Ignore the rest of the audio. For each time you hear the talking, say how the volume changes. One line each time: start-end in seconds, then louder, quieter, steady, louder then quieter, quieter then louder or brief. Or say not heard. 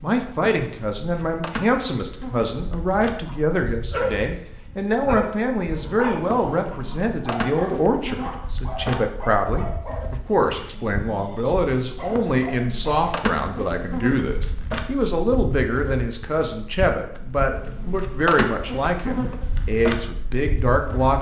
0.0-21.1 steady.